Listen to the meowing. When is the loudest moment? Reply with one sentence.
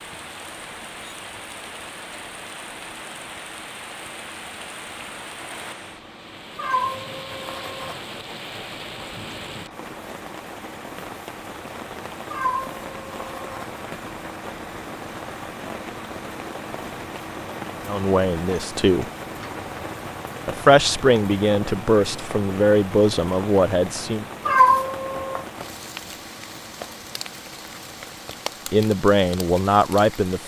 The volume of the meowing peaks at 25 seconds.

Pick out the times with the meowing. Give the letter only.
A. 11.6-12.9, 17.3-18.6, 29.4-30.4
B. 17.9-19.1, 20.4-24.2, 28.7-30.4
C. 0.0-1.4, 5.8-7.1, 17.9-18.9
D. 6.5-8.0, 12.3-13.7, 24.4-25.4
D.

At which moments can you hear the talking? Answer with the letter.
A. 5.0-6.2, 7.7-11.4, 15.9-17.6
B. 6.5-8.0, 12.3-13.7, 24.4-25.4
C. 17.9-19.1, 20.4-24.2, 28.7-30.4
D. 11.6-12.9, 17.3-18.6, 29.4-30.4
C.